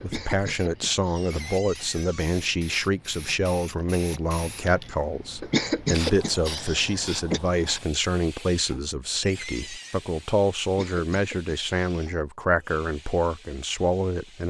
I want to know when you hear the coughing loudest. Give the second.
6 s.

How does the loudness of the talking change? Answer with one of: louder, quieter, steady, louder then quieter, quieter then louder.
steady.